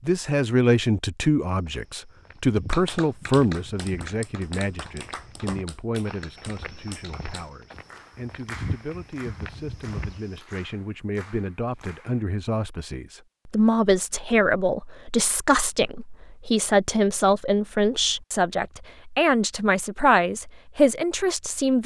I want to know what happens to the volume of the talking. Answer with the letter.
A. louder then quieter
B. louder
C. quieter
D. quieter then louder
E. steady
D.